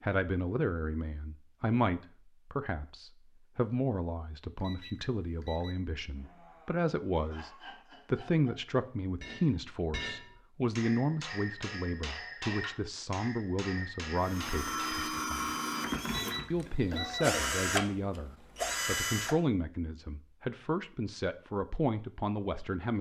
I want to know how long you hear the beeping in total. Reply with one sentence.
You can hear the beeping for 2 seconds altogether.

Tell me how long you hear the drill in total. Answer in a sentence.
You can hear the drill for 5 seconds altogether.